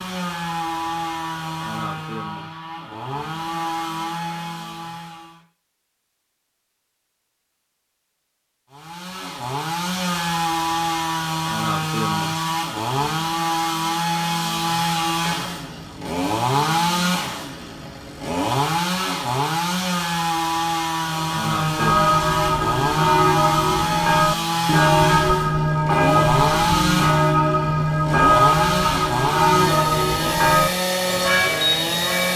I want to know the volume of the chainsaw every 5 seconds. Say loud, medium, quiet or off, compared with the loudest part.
medium, medium, loud, loud, loud, loud, loud.